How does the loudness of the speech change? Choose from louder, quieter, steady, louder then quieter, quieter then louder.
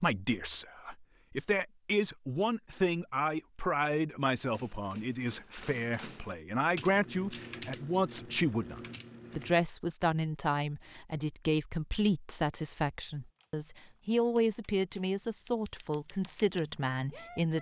steady.